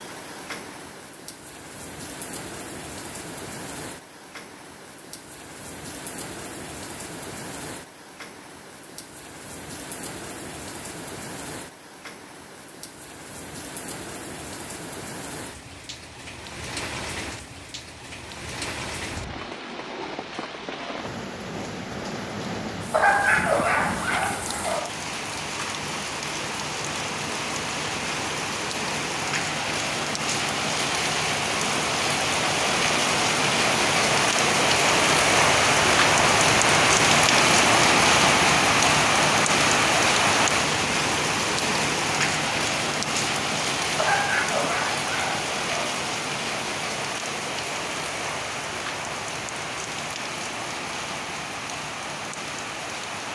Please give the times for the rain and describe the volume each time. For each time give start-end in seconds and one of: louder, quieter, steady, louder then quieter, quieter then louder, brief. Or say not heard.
0.0-53.3 louder then quieter.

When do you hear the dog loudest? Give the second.
23 s.